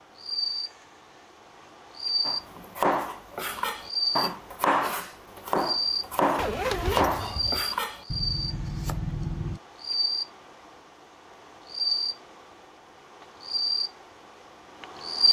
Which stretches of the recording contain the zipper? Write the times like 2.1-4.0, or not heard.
6.3-7.7.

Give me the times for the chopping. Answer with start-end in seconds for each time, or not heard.
2.2-9.6.